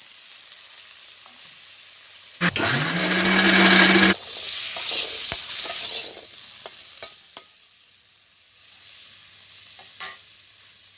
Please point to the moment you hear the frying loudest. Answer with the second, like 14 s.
5 s.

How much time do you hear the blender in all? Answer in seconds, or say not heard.
2 s.